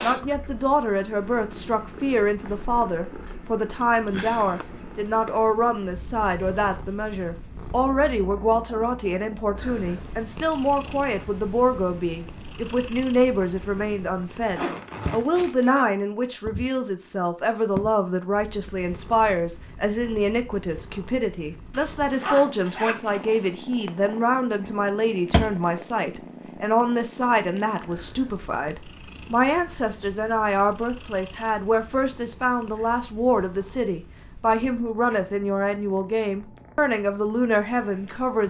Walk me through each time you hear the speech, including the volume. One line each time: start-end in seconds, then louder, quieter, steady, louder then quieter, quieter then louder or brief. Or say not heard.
0.0-38.4 steady.